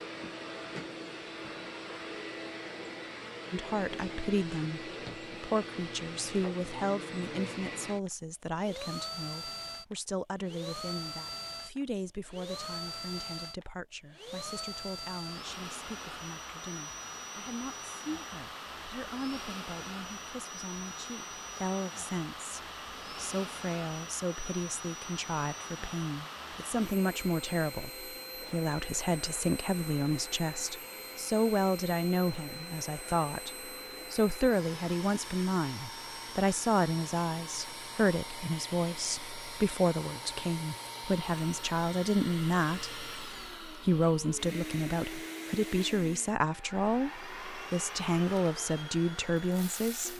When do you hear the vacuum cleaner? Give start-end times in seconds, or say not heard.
0.0-50.1.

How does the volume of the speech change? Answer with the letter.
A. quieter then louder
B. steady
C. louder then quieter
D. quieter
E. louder
A.